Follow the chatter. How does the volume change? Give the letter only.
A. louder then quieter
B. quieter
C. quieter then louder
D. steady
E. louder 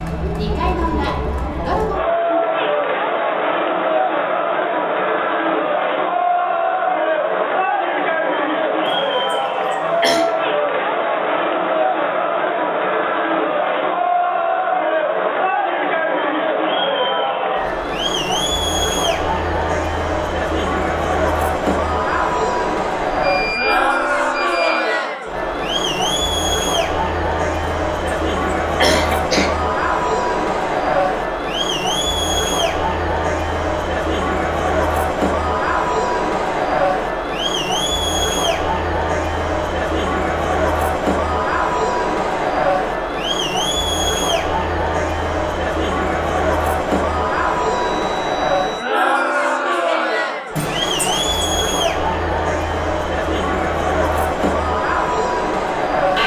D.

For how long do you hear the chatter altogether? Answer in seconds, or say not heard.
56 s.